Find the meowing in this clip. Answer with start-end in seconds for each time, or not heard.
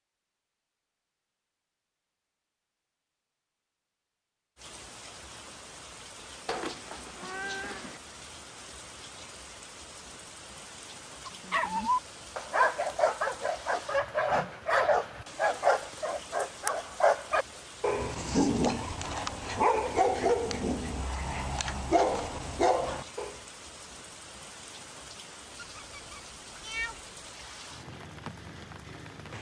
6.5-8.0, 25.6-27.1.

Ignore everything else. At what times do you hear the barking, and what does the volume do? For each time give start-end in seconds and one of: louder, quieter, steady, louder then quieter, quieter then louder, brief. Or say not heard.
11.2-23.4 steady.